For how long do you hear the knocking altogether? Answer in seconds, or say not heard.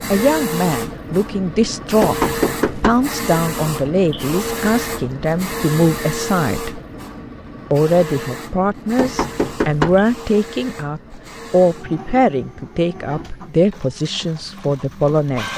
2 s.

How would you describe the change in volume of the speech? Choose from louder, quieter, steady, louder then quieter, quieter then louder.
steady.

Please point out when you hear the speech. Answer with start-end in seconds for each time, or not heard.
0.1-6.8, 7.7-15.5.